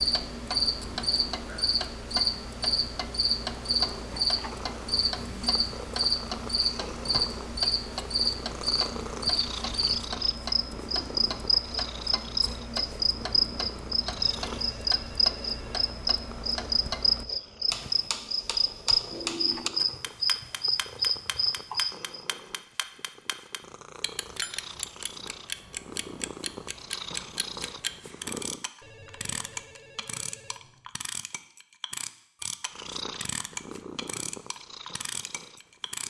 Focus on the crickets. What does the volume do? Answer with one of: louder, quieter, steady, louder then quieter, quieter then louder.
steady.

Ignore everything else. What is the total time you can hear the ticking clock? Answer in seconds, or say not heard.
36 s.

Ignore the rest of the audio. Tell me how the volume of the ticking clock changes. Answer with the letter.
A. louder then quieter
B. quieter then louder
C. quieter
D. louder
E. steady
E.